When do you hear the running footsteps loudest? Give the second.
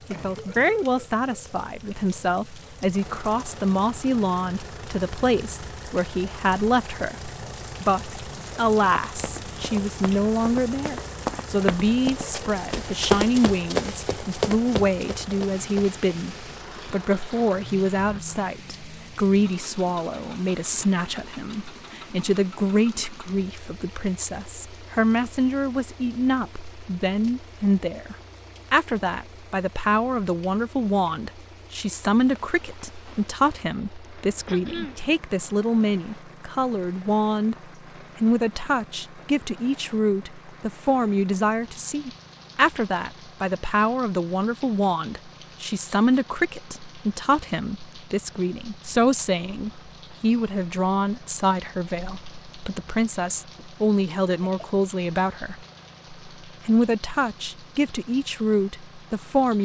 13 s.